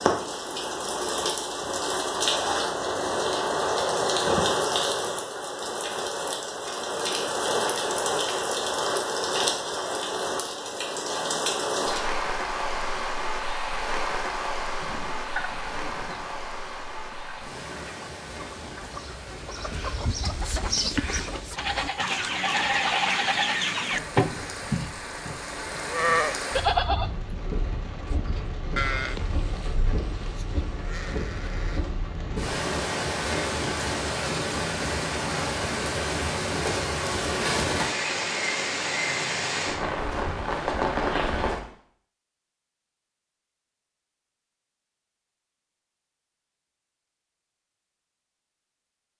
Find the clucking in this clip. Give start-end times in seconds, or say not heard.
14.8-24.0.